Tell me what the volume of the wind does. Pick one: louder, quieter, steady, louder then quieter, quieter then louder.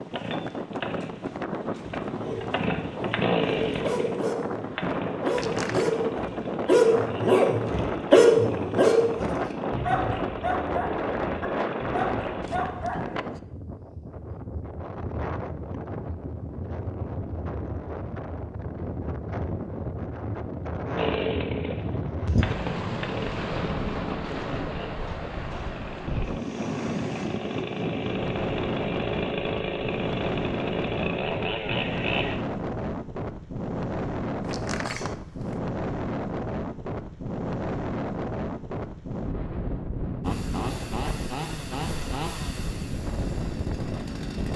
steady.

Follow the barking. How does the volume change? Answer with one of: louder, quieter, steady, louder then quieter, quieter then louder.
louder then quieter.